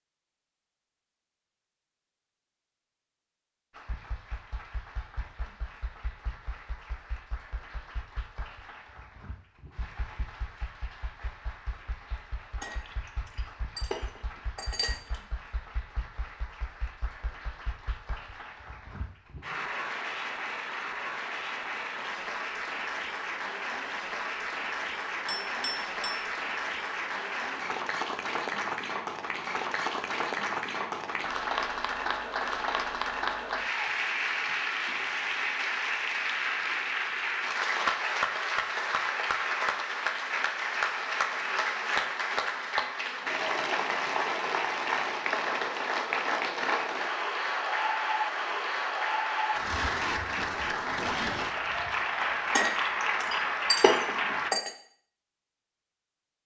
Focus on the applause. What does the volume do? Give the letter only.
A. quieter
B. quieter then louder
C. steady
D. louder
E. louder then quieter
D.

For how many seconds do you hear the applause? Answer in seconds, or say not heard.
51 s.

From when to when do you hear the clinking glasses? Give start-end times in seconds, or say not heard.
12.6-15.2, 25.2-26.3, 52.5-54.7.